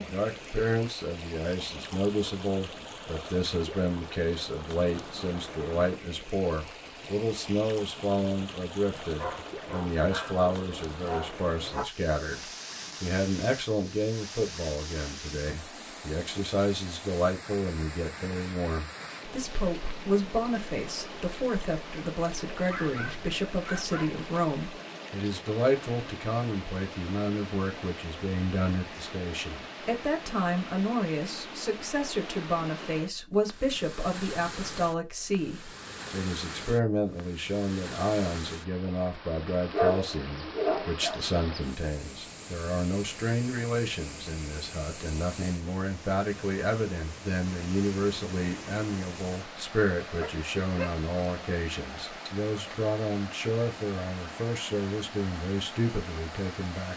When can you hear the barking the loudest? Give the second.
40 s.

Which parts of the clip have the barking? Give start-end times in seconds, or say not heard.
9.2-11.8, 22.6-24.1, 39.7-41.1, 50.1-51.5.